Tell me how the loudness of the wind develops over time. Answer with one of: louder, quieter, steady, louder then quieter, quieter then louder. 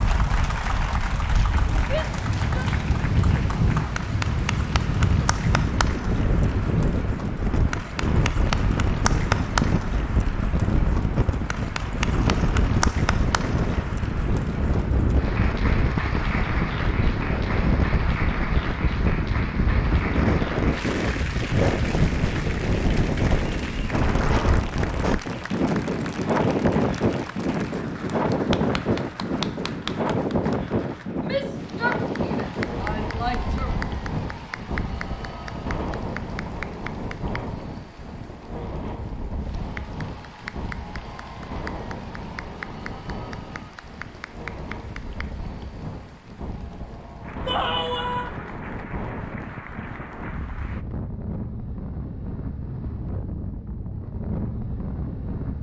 quieter.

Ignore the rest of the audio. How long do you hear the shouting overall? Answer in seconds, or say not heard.
4 s.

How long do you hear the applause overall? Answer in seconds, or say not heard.
51 s.